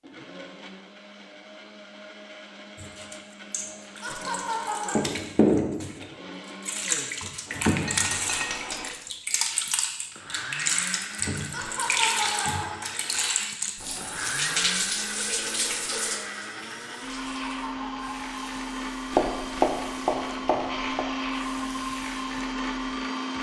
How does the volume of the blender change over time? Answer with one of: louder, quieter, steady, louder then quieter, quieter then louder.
louder.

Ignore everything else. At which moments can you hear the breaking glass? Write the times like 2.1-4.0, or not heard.
7.8-8.9.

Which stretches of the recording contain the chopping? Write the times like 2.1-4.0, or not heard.
19.1-21.0.